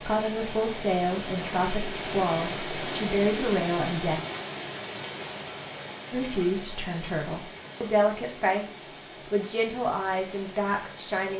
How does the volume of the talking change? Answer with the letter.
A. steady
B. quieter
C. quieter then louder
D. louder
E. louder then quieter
A.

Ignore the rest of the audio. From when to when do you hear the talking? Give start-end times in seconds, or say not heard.
0.0-4.2, 6.1-11.3.